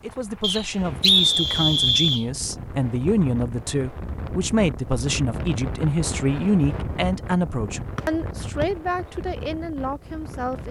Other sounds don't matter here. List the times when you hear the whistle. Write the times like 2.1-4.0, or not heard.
0.4-2.2, 8.0-8.7.